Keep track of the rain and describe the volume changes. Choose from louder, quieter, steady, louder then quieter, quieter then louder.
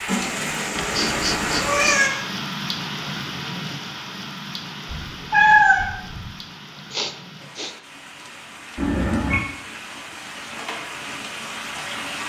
quieter then louder.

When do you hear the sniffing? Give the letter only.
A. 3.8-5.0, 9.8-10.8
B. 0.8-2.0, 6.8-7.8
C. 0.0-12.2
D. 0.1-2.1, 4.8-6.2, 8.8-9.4
B.